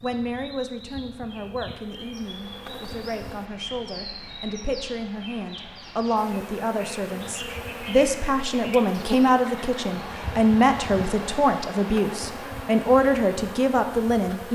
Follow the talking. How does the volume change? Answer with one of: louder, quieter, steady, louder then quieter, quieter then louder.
louder.